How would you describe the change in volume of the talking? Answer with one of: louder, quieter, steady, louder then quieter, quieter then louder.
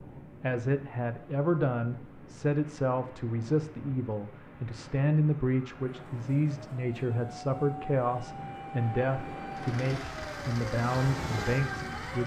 steady.